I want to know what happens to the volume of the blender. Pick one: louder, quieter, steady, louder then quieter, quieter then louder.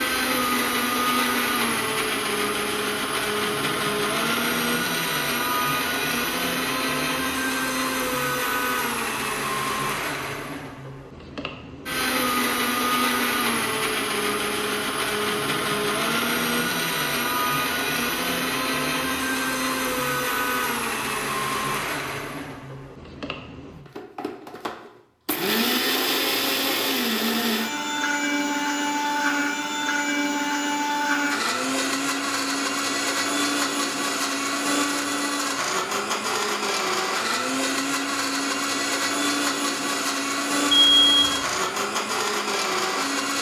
steady.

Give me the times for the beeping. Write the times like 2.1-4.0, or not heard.
40.7-41.5.